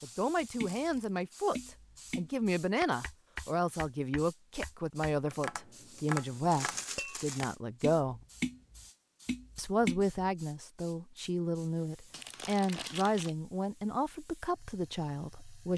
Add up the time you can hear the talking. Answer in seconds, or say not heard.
14 s.